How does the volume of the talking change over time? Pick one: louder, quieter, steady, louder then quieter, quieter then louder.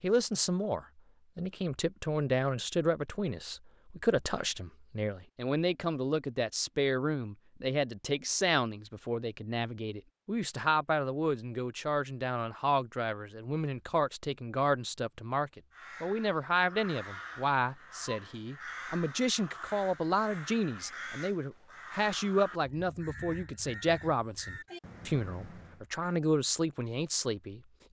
steady.